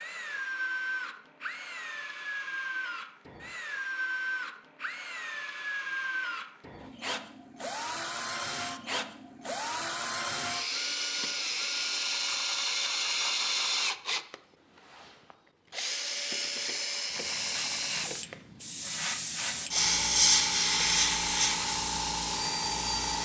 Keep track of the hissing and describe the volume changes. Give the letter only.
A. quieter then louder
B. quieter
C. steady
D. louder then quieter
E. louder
D.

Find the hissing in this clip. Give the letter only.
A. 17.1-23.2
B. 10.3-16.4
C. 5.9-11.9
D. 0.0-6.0
A.